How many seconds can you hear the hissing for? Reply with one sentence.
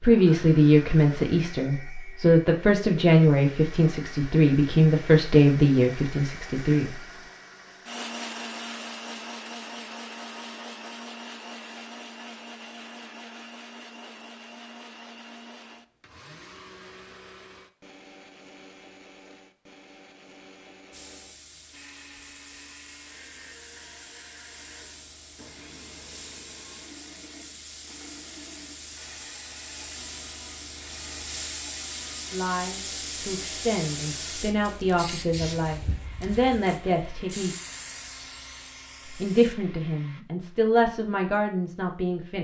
You can hear the hissing for 19 seconds altogether.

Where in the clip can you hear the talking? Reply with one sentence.
You can hear the talking from 0.0 to 6.9 s, from 32.3 to 37.5 s and from 39.1 to 42.3 s.